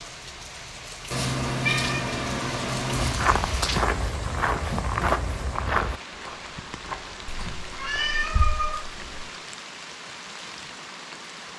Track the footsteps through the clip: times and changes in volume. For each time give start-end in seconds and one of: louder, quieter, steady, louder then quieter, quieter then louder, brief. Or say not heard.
3.0-8.4 quieter.